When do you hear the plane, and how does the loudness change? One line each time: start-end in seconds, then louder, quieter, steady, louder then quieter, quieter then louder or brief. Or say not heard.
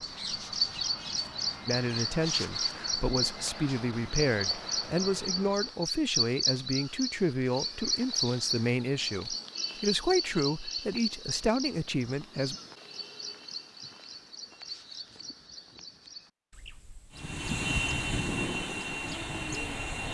0.0-5.8 steady
17.1-20.0 brief.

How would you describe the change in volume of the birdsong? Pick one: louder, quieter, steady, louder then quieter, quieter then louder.
quieter.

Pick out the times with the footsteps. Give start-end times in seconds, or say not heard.
not heard.